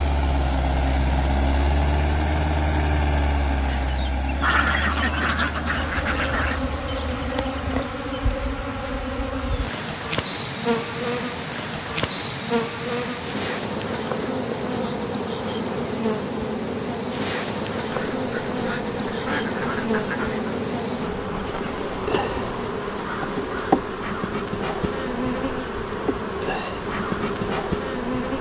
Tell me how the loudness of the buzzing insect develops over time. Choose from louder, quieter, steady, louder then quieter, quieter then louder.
louder.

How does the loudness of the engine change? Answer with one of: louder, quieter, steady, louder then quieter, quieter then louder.
quieter.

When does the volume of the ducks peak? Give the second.
5 s.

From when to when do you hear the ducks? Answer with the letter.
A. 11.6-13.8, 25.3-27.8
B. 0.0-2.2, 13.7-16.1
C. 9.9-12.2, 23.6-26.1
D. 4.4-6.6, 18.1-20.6
D.